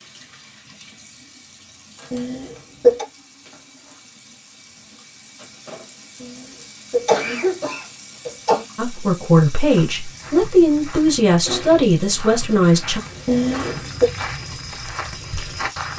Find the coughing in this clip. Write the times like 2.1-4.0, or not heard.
2.1-3.0, 6.2-8.7, 13.2-14.1.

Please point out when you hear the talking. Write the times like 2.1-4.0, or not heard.
8.8-13.0.